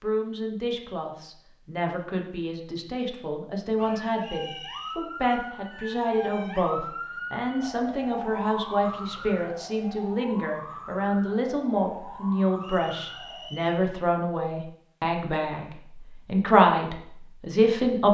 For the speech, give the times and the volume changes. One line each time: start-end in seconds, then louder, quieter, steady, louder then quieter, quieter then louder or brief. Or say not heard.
0.0-18.0 louder.